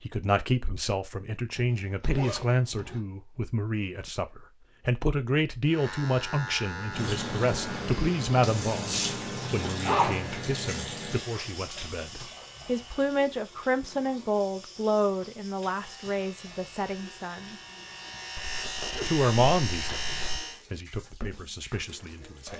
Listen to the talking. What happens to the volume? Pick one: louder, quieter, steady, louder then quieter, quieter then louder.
steady.